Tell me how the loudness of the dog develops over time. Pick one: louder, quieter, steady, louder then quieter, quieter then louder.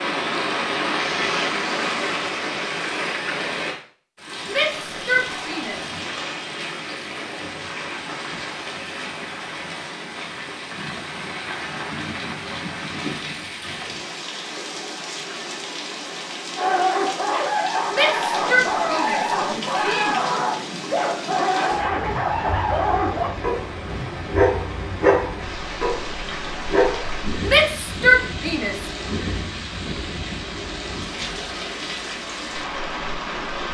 steady.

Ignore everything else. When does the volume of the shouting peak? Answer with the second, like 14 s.
28 s.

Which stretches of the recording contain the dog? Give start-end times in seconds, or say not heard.
16.6-27.1.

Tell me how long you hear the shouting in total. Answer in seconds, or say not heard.
5 s.